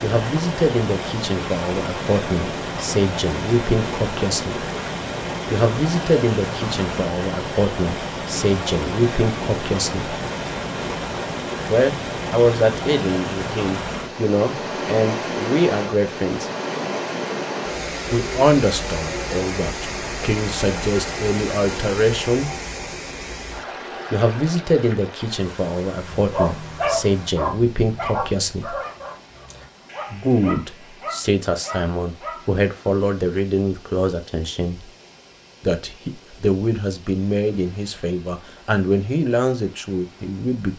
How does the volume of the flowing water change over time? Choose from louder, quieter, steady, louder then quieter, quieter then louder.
quieter.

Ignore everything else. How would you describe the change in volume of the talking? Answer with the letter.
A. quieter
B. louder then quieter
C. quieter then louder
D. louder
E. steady
E.